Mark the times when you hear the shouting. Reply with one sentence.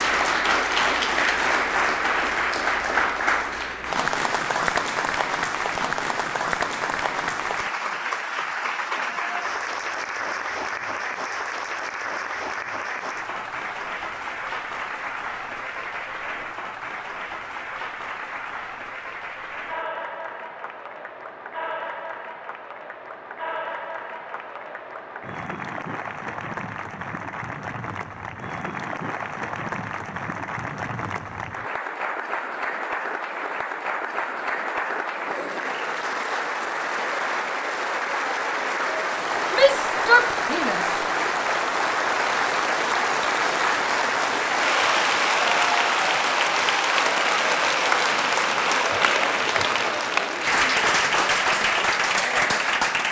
The shouting can be heard from 39.5 to 41.1 s.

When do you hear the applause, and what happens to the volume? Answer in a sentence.
You can hear the applause from 0.0 to 53.0 s, getting quieter then louder.